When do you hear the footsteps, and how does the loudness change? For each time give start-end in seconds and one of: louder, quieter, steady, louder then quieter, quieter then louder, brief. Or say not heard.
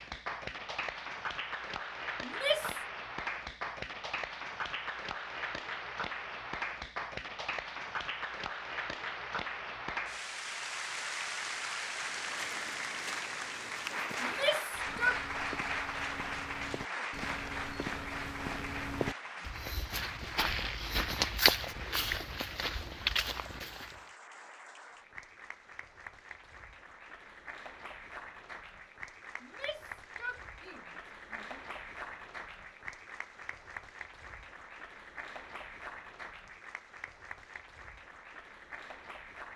11.8-24.1 louder.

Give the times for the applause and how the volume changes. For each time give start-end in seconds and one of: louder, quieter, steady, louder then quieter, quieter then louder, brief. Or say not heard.
0.0-39.5 quieter.